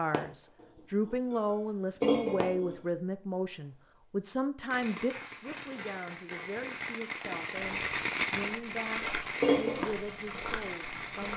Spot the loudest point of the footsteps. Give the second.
10 s.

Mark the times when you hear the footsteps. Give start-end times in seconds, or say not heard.
7.5-11.3.